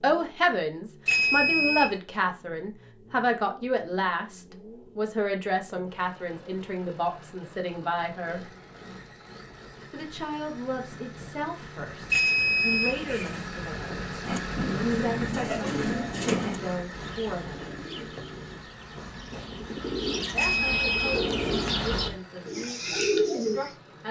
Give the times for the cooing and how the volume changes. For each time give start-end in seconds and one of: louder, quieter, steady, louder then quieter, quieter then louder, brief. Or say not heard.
14.2-23.7 quieter then louder.